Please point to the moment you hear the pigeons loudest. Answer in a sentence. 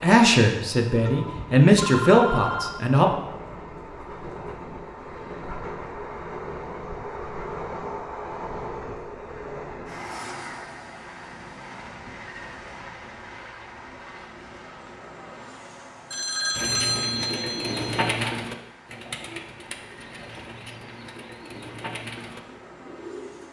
The volume of the pigeons peaks at 18 seconds.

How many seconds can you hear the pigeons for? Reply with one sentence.
You can hear the pigeons for 7 seconds altogether.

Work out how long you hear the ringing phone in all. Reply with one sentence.
The ringing phone can be heard for 4 seconds in total.